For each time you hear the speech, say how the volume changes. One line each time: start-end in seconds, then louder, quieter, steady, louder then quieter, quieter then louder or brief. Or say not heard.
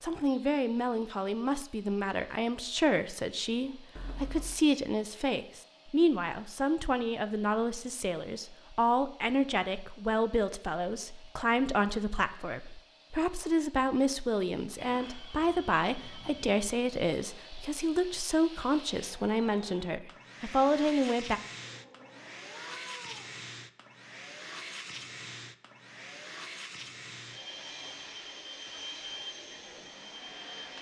0.0-21.4 steady.